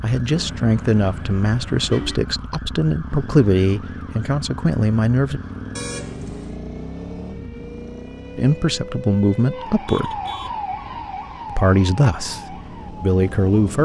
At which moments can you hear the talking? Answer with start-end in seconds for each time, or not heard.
0.0-5.4, 8.3-10.2, 11.5-13.7.